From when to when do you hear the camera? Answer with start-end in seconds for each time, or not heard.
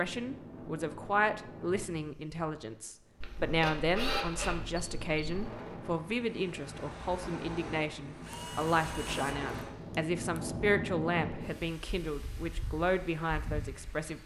3.2-5.5, 8.2-10.4.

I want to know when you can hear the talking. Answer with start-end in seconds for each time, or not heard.
0.0-14.2.